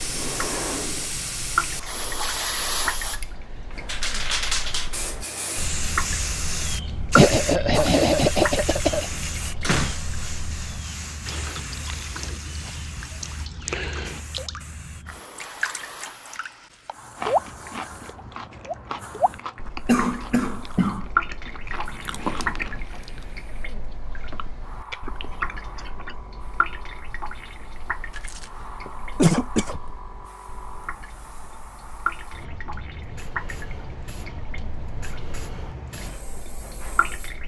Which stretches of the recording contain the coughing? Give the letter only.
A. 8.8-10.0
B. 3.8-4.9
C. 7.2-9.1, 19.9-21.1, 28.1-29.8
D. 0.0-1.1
C.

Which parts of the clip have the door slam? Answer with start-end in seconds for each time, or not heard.
8.8-10.0.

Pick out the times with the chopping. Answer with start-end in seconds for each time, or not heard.
not heard.